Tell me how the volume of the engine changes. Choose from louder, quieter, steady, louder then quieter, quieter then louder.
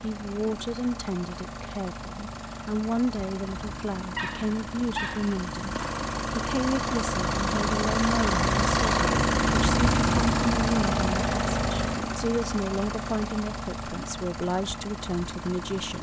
louder then quieter.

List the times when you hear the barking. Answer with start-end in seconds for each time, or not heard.
4.2-5.3.